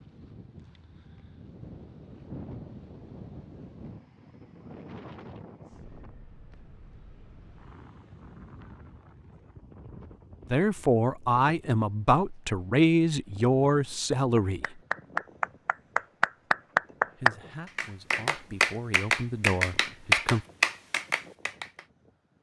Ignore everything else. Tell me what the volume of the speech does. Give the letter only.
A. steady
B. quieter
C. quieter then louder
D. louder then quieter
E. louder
C.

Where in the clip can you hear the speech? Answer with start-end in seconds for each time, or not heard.
10.5-14.8, 17.1-20.4.